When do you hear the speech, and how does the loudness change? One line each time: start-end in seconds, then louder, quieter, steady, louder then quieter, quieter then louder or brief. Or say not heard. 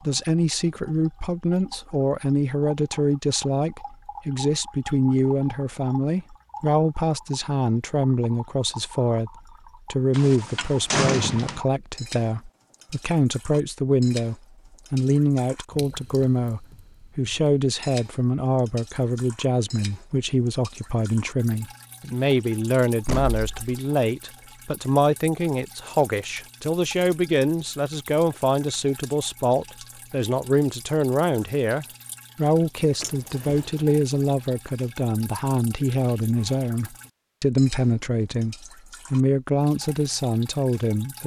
0.0-9.3 steady
9.9-41.2 steady.